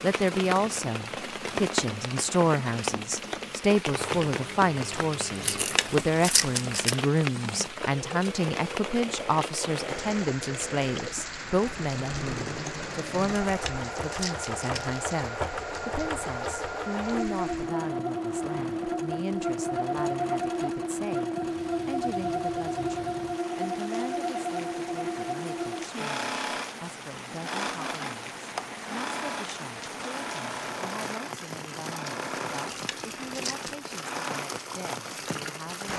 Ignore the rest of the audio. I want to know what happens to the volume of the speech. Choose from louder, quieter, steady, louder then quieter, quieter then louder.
quieter.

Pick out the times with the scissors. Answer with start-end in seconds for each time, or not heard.
5.4-7.0, 13.3-15.0, 32.5-33.8.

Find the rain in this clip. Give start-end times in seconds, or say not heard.
0.0-35.9.